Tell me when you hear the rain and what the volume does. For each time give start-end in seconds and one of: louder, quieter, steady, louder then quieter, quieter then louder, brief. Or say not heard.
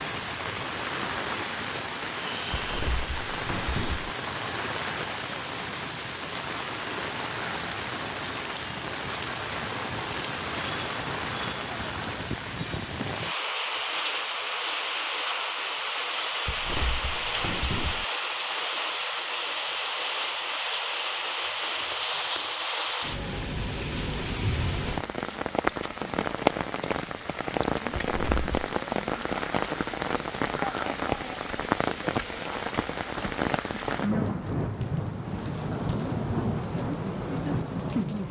0.0-38.2 steady.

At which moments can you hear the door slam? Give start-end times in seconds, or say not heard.
2.5-4.1, 16.4-18.1, 27.9-28.8.